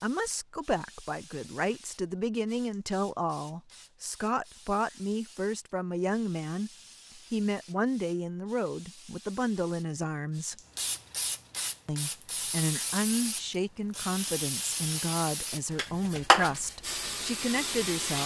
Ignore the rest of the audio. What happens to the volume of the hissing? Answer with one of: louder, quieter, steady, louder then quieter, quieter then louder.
louder.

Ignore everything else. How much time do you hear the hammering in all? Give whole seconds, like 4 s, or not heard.
not heard.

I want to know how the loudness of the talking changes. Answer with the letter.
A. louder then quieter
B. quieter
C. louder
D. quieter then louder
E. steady
E.